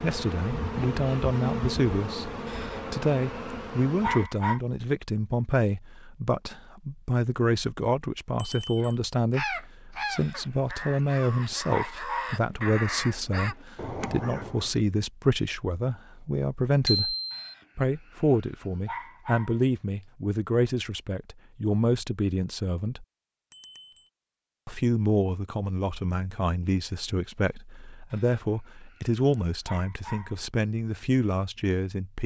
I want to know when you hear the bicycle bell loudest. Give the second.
17 s.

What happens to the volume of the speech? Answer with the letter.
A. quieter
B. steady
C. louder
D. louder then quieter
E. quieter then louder
B.